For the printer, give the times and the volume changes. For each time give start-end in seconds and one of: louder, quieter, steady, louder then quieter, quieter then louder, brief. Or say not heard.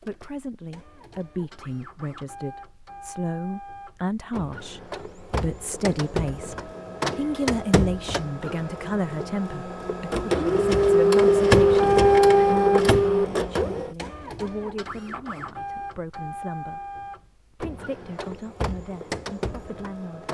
0.0-20.2 louder then quieter.